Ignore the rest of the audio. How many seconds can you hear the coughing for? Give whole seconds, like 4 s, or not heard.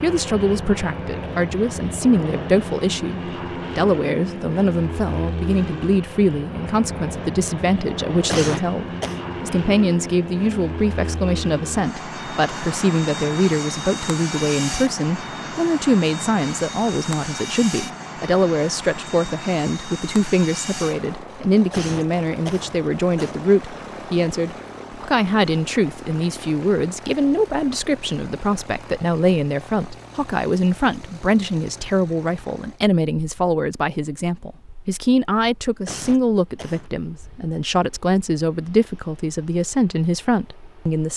4 s.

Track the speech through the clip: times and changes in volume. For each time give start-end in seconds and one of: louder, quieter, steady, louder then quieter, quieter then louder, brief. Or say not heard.
0.0-41.1 steady.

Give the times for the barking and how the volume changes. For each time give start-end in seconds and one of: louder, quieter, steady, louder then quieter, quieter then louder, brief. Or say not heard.
not heard.